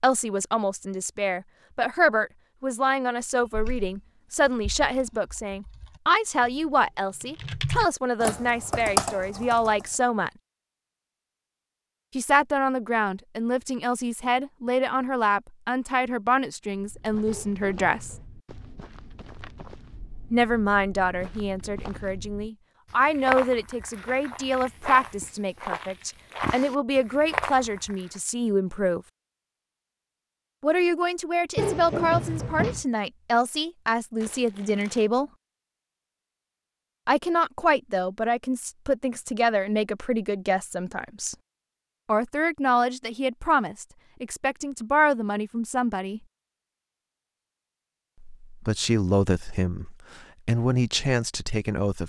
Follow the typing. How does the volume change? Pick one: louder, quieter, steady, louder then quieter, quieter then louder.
quieter then louder.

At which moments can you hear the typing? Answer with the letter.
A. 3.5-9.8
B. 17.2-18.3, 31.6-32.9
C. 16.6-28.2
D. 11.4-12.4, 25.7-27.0
A.